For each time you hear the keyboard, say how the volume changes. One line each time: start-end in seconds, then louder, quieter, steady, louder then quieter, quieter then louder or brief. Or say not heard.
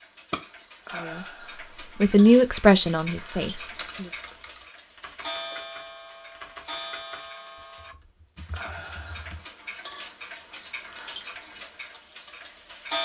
3.5-9.4 louder then quieter.